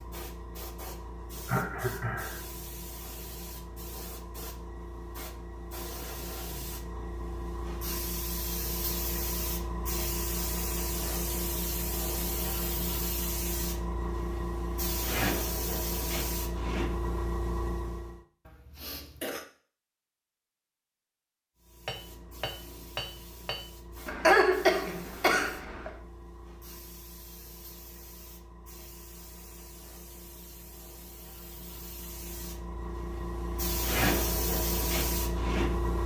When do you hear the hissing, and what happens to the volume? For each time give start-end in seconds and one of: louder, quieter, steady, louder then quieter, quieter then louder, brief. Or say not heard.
0.0-18.2 louder
21.6-36.0 louder.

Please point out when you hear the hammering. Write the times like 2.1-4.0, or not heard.
21.9-23.7.